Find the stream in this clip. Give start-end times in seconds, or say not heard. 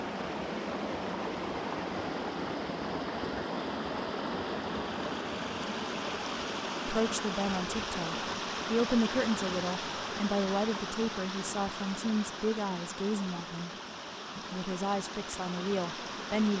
0.0-16.5.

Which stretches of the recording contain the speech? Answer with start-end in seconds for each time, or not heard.
6.8-13.7, 14.3-16.5.